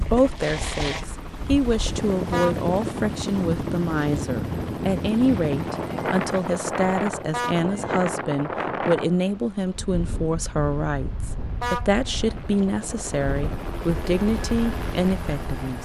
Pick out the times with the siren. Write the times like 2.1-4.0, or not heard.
not heard.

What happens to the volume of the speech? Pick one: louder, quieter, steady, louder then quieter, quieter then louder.
steady.